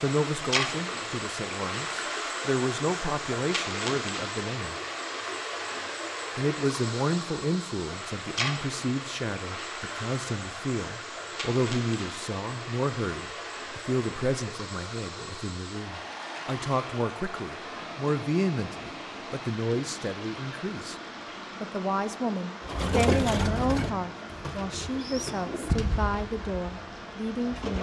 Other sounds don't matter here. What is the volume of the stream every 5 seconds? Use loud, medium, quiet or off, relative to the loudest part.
loud, loud, medium, medium, medium, medium.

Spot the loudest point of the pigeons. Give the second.
23 s.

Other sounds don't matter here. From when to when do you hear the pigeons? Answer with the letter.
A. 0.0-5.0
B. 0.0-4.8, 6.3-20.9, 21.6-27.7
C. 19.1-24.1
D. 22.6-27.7
D.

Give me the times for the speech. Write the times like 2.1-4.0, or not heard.
0.0-4.8, 6.3-20.9, 21.6-27.7.